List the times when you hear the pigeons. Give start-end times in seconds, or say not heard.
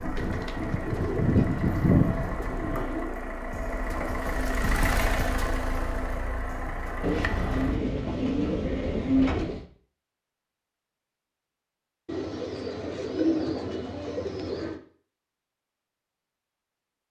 0.1-3.1, 7.0-9.7, 12.1-14.8.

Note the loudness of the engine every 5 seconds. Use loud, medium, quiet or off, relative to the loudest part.
loud, loud, off, off.